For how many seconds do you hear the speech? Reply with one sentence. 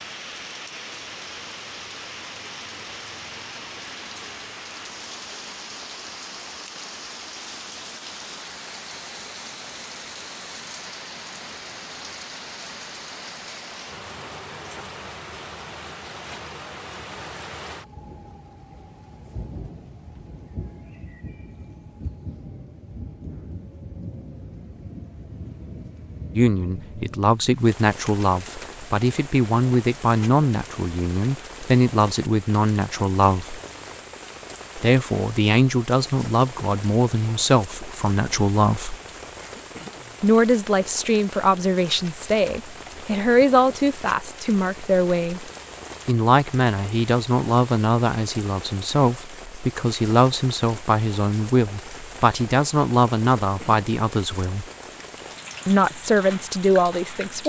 You can hear the speech for 27 seconds altogether.